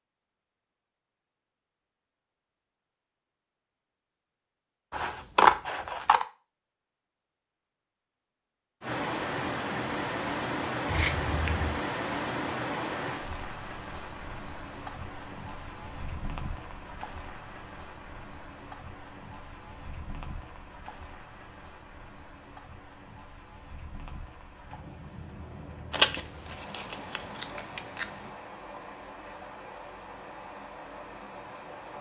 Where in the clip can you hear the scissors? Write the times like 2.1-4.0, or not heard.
4.9-6.2, 10.8-11.7, 25.9-28.1.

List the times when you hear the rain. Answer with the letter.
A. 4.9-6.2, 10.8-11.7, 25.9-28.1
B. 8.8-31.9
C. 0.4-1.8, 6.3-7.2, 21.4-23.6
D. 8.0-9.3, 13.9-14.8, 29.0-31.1
B.